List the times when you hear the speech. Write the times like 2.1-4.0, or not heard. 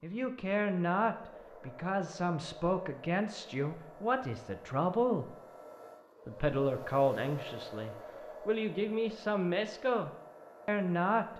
0.0-5.3, 6.2-11.3.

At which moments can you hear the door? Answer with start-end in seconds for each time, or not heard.
not heard.